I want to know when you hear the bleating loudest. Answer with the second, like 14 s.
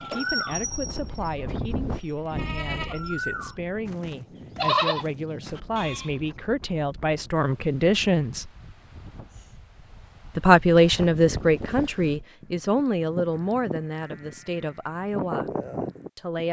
5 s.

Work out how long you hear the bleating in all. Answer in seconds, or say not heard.
11 s.